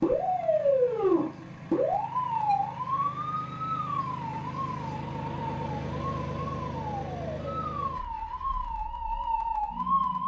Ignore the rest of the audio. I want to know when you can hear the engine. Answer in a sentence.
The engine can be heard from 0.0 to 10.2 s.